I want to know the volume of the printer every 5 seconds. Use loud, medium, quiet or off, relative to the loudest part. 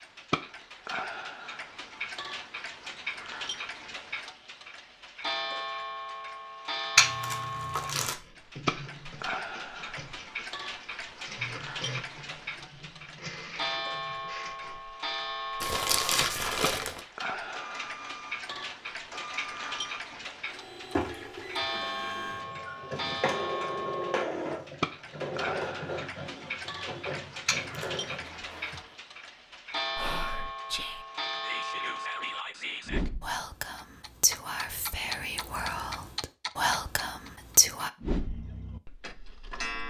off, medium, medium, medium, loud, loud, off, off.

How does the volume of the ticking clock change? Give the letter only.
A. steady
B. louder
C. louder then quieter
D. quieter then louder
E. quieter
A.